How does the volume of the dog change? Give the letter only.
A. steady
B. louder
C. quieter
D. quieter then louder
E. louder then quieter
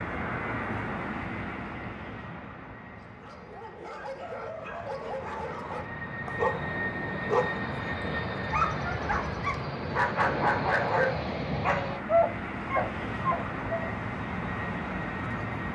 B.